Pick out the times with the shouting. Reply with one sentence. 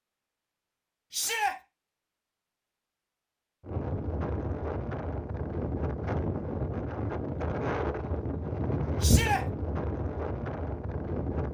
The shouting can be heard from 1.1 to 1.6 s and from 9.0 to 9.4 s.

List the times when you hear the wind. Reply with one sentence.
The wind can be heard from 3.6 to 11.4 s.